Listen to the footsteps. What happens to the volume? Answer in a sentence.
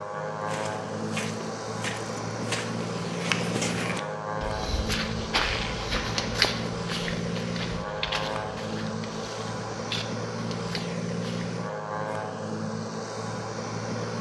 The loudness of the footsteps goes up, then down.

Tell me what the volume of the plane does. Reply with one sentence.
The loudness of the plane stays about the same.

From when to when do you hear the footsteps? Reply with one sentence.
You can hear the footsteps from 0.3 to 11.5 s.